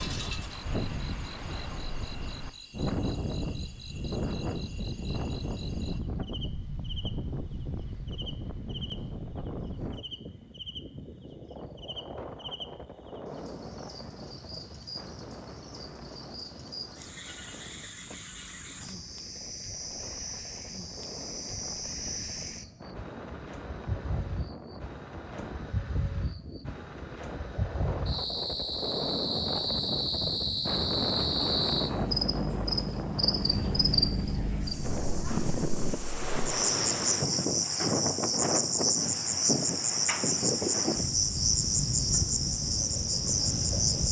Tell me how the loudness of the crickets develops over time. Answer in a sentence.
The loudness of the crickets goes up.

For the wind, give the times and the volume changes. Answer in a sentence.
You can hear the wind from 0.0 to 44.0 s, getting quieter then louder.